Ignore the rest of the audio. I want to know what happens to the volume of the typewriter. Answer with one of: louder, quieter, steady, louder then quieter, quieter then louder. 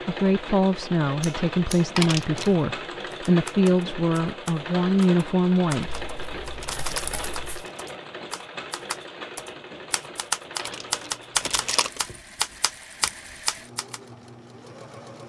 louder.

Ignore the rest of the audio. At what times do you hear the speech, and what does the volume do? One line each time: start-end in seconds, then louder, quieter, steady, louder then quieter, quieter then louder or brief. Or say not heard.
0.1-6.0 steady.